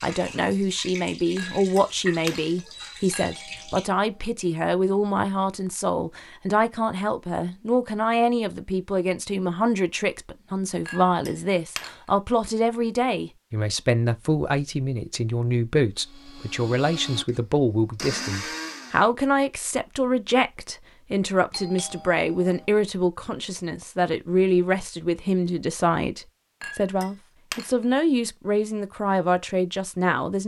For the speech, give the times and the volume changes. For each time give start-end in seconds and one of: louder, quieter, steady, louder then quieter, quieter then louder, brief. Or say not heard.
0.0-30.4 steady.